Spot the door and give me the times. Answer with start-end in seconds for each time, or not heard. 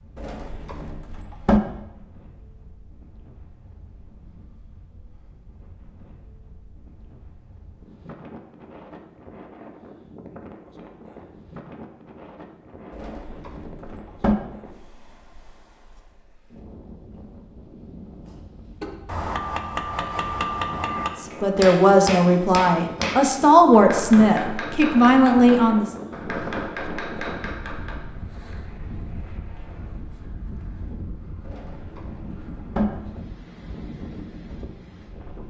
0.1-1.6, 12.9-14.3, 31.4-32.9.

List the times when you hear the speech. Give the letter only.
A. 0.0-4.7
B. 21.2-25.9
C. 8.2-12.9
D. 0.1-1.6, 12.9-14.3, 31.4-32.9
B.